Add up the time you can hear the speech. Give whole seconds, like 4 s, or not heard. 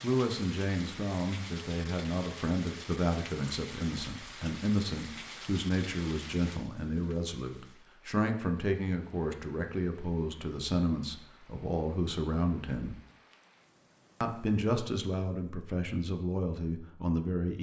16 s.